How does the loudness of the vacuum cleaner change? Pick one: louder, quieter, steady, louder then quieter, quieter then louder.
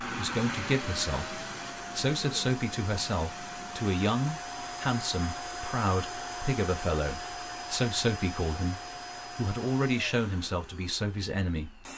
quieter.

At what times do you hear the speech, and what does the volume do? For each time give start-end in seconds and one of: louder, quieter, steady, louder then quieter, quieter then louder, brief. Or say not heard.
0.0-11.8 steady.